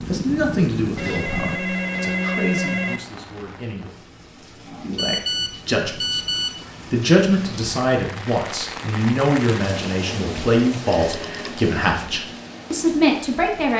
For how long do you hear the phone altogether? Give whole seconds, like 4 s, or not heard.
4 s.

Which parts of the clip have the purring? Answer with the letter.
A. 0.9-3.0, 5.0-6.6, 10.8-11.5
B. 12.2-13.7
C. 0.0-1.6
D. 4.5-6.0
C.